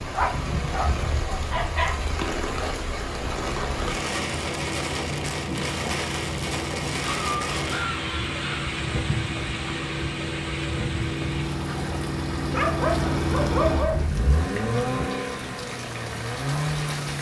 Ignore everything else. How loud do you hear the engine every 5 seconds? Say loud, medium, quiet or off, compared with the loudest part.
medium, medium, loud, loud.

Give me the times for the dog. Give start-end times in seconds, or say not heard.
0.1-2.0, 7.0-8.7, 12.5-14.1.